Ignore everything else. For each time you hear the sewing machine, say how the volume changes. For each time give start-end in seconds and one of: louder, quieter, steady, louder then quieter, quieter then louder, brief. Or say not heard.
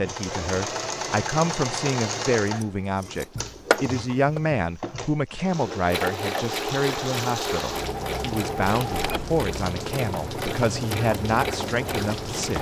0.0-12.5 quieter then louder.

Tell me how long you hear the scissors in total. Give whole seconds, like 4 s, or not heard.
2 s.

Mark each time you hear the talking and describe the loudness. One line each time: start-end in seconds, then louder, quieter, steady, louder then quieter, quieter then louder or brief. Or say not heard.
0.0-12.5 steady.